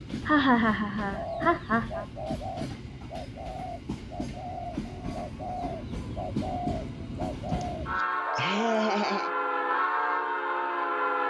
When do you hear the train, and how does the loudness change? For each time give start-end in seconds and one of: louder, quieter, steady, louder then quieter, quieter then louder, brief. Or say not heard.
0.0-11.2 louder.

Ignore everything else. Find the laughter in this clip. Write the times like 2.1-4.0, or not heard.
0.2-2.0, 7.5-9.3.